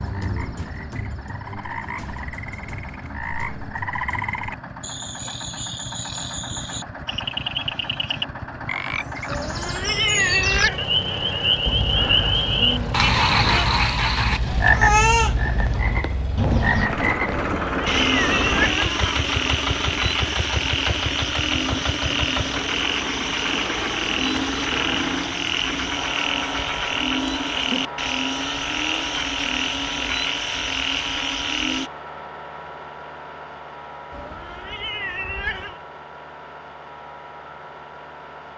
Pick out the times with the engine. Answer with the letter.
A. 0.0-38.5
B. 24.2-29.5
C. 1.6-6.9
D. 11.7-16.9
A.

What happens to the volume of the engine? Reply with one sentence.
The loudness of the engine goes up, then down.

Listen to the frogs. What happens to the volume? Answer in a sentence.
The loudness of the frogs goes up.